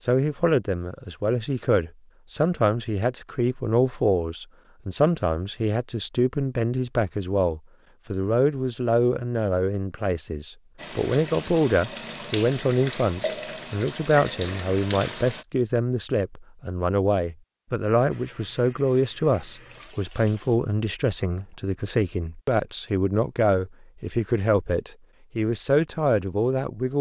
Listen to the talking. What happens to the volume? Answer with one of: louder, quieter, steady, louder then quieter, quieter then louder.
steady.